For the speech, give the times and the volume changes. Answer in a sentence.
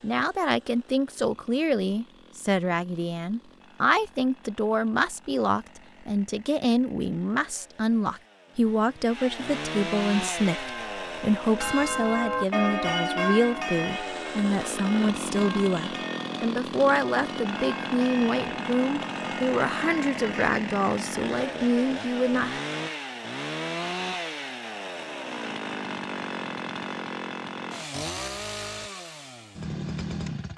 You can hear the speech from 0.0 to 22.6 s, at a steady volume.